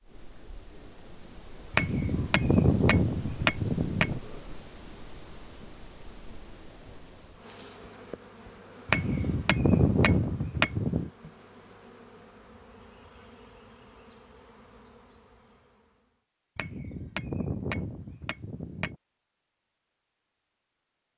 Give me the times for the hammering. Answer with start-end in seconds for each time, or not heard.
1.7-4.2, 8.8-11.1, 16.6-18.9.